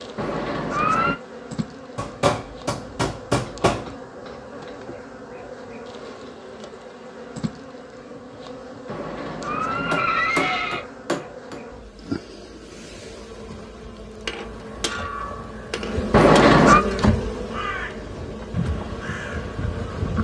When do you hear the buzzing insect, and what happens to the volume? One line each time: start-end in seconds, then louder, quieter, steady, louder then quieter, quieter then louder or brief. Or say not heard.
0.0-20.1 louder.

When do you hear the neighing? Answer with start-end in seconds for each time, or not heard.
0.1-1.1, 8.8-10.8, 16.1-16.9.